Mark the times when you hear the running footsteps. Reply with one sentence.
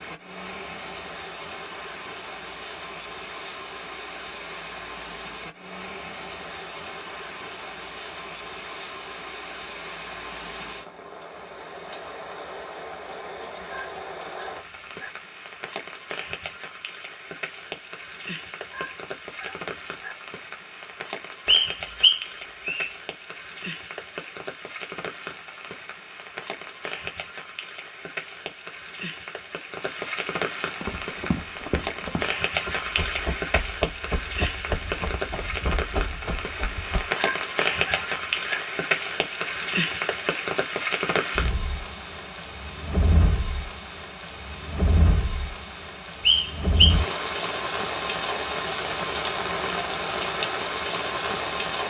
The running footsteps can be heard from 30.8 to 37.1 s.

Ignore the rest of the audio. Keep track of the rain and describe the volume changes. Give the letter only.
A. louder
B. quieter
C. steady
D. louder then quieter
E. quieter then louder
A.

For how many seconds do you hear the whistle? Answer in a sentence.
You can hear the whistle for 2 seconds altogether.